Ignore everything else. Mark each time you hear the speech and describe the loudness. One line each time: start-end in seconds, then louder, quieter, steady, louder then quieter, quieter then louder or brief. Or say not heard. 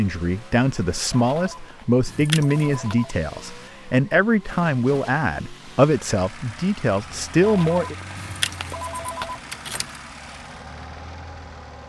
0.0-8.0 steady.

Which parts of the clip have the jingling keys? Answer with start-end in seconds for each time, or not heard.
2.0-2.8, 8.2-10.0.